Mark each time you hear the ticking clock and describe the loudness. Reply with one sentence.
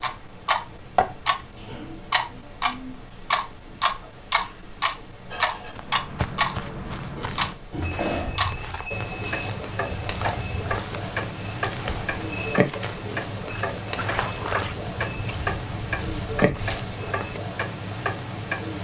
You can hear the ticking clock from 0.0 to 18.7 s, at a steady volume.